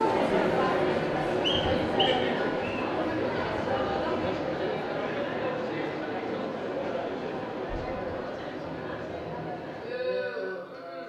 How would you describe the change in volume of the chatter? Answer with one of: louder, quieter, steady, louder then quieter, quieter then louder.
quieter.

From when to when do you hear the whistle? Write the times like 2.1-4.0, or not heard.
1.4-2.9.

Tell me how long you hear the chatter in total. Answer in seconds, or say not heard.
11 s.